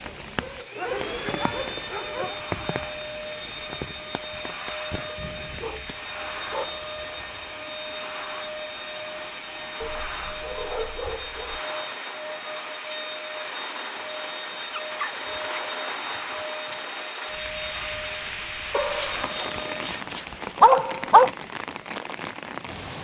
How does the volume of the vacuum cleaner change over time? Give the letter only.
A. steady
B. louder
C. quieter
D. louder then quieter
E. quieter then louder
A.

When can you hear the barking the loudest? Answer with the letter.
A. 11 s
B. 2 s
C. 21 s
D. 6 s
C.